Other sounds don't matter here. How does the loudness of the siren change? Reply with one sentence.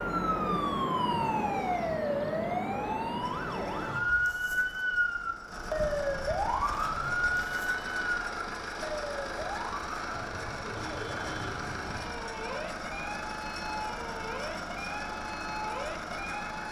The loudness of the siren goes down.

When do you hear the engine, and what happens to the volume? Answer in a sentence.
The engine can be heard from 3.2 to 16.6 s, getting louder.